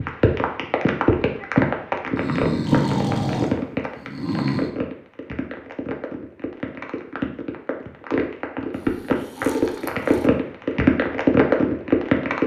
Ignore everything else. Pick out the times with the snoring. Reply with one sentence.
You can hear the snoring from 2.1 to 4.7 s and from 8.7 to 10.3 s.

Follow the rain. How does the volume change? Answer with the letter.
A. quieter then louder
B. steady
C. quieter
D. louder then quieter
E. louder
A.